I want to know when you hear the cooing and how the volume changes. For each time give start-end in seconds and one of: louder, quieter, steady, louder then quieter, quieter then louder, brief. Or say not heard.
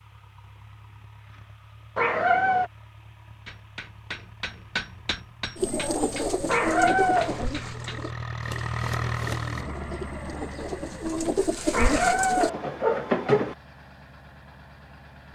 5.5-12.5 quieter then louder.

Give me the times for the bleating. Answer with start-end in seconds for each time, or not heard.
not heard.